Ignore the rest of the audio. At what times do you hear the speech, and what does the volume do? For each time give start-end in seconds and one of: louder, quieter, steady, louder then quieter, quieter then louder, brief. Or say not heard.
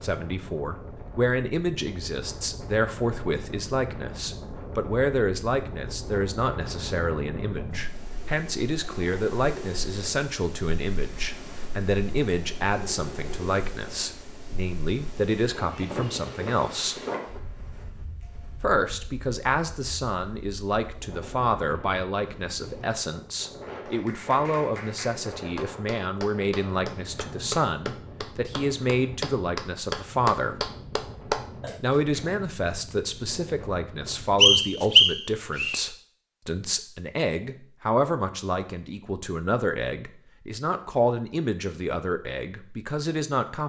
0.0-17.0 steady
18.6-30.6 steady
31.8-43.6 steady.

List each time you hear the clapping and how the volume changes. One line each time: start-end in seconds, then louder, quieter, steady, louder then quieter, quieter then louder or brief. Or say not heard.
23.7-32.2 louder.